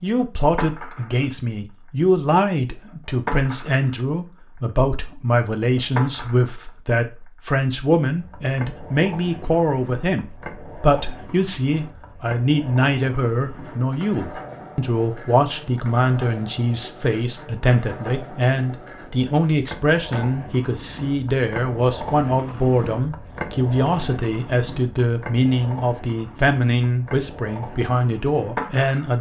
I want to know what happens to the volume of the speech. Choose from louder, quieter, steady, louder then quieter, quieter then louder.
steady.